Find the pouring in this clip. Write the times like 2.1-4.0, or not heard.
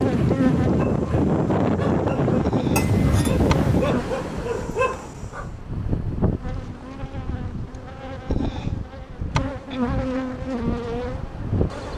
2.8-4.0.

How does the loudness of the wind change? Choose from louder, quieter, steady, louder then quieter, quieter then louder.
quieter.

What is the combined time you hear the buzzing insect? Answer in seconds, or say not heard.
10 s.